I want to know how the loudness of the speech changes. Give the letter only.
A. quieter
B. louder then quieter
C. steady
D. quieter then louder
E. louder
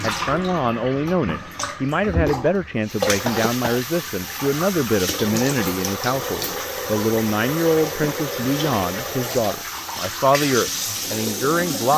C.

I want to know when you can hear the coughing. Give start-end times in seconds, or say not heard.
3.2-3.9.